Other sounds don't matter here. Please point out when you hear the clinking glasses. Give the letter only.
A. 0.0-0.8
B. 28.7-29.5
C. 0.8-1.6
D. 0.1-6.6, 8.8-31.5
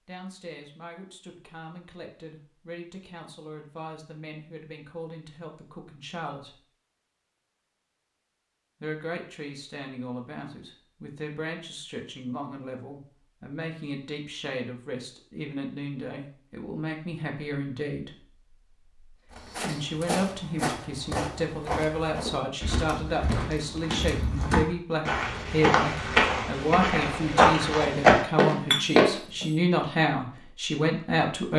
B.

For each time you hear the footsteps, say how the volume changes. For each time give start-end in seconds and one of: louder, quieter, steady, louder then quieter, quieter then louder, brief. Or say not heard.
19.3-29.1 louder.